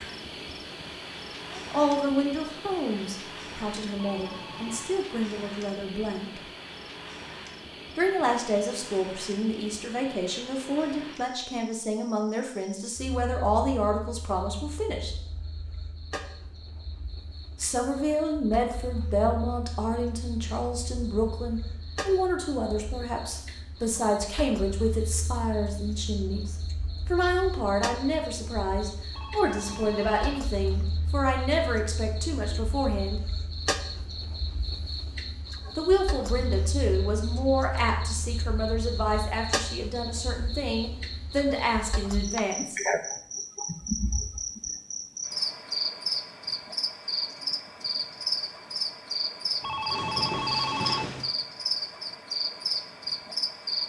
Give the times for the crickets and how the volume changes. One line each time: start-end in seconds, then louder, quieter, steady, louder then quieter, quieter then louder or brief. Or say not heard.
0.0-53.8 quieter then louder.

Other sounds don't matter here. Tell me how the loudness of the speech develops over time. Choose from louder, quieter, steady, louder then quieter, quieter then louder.
steady.